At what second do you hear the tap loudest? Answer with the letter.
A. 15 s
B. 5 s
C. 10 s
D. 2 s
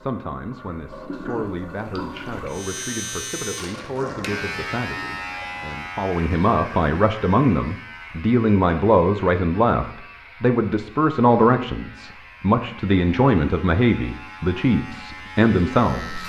D.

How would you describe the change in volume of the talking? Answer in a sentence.
The volume of the talking goes up.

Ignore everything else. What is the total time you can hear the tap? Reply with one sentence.
The tap can be heard for 6 seconds in total.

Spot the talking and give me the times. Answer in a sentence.
You can hear the talking from 0.0 to 16.2 s.